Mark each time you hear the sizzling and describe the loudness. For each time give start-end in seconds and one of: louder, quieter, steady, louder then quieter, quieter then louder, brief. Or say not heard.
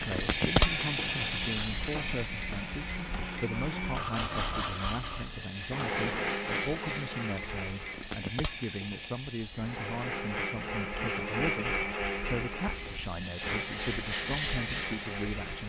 0.0-15.6 quieter then louder.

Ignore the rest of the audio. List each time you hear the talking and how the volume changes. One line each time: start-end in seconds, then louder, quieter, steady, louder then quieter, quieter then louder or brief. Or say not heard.
0.0-15.6 steady.